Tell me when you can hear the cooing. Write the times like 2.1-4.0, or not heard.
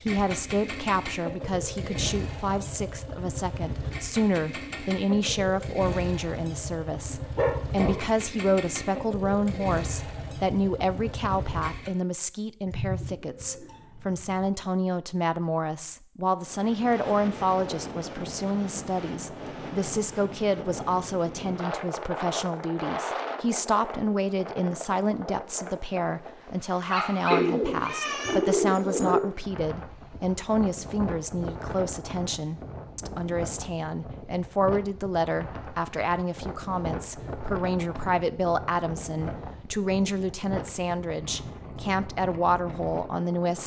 12.7-14.5, 27.3-29.2.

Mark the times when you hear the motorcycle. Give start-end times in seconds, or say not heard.
0.0-11.9.